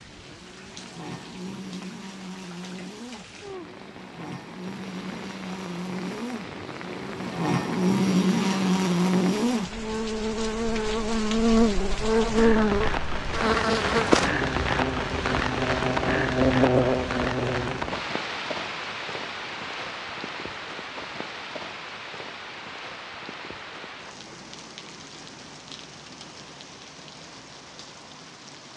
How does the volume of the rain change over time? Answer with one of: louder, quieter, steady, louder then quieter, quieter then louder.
louder then quieter.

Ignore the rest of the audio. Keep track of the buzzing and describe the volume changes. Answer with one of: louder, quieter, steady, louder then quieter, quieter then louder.
louder.